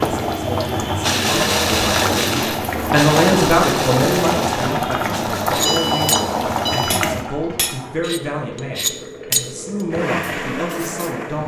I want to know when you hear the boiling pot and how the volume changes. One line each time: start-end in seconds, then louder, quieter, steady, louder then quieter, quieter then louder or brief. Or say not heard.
0.0-11.4 quieter.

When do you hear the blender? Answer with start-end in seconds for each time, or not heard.
0.0-6.8, 9.9-11.4.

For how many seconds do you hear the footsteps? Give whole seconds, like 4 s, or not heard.
not heard.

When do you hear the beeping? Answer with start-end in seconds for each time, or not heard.
5.7-7.0.